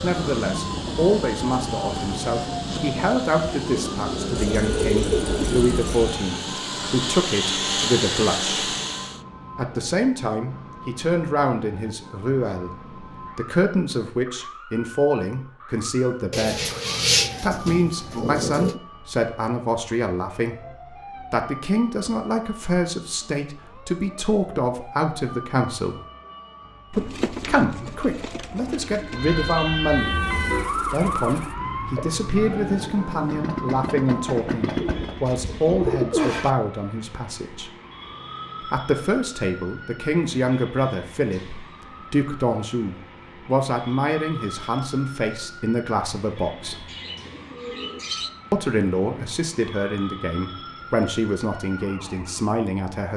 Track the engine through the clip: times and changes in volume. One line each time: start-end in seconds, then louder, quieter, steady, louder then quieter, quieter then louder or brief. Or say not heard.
0.0-9.2 louder
30.0-35.4 louder.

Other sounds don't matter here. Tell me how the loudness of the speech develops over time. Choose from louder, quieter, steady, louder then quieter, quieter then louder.
steady.